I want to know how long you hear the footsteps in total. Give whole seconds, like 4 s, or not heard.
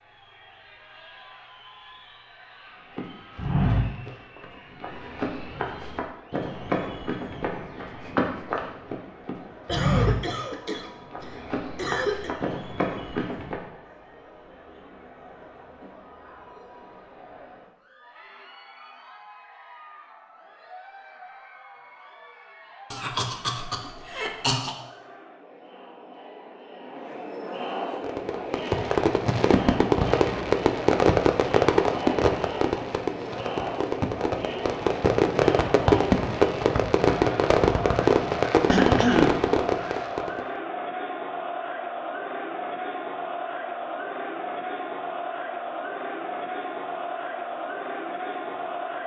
11 s.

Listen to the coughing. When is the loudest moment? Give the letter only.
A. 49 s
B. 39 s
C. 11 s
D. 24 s
B.